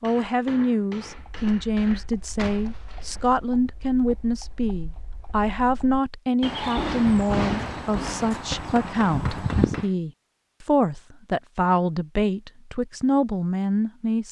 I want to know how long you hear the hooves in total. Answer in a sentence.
You can hear the hooves for 9 seconds altogether.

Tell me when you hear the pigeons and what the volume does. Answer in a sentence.
You can't hear the pigeons here.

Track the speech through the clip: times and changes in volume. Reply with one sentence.
You can hear the speech from 0.0 to 14.2 s, at a steady volume.